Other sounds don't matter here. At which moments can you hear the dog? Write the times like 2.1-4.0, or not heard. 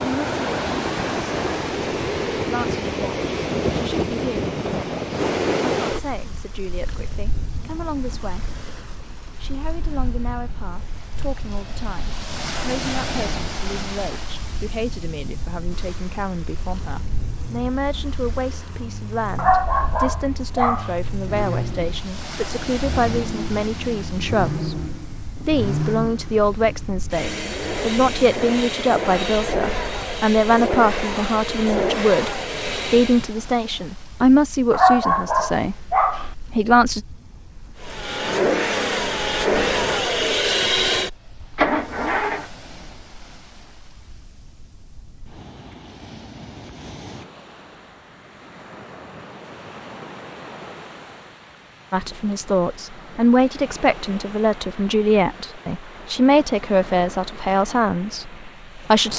19.4-20.9, 34.7-36.3.